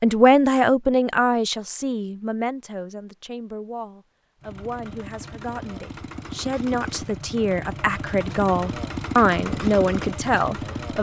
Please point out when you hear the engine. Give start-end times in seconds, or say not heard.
4.4-10.9.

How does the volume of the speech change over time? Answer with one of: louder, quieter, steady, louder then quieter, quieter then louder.
quieter then louder.